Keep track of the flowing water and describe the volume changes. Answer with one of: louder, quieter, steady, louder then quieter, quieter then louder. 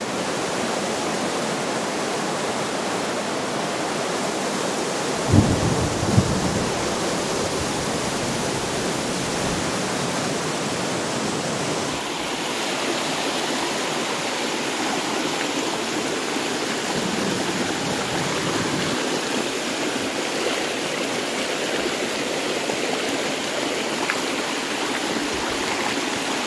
steady.